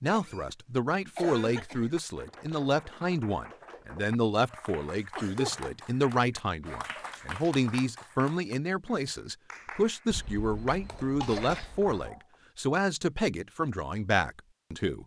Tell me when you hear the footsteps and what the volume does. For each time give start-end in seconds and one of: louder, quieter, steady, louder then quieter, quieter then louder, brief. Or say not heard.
not heard.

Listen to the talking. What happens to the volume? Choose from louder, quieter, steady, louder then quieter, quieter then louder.
steady.